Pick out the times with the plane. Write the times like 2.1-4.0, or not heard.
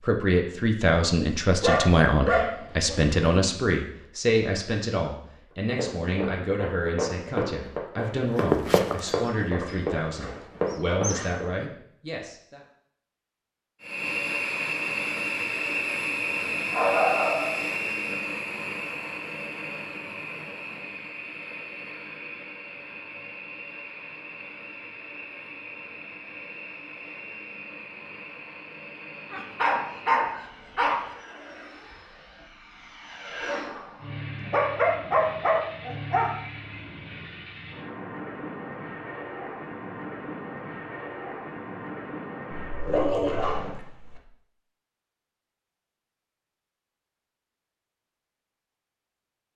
13.8-42.9.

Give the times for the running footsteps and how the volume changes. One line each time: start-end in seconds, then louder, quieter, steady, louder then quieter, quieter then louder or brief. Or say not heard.
5.8-11.5 louder then quieter.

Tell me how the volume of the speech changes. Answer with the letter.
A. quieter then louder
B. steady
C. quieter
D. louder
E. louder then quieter
C.